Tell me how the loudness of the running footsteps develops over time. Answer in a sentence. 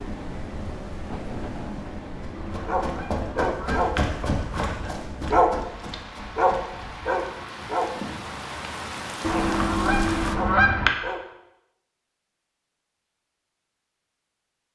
The loudness of the running footsteps goes up, then down.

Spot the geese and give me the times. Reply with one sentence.
The geese can be heard from 2.4 to 4.8 s and from 9.2 to 10.9 s.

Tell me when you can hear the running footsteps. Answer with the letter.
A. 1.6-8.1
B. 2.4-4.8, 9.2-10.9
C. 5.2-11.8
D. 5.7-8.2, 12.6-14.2
A.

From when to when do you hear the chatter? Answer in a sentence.
The chatter can't be heard in this clip.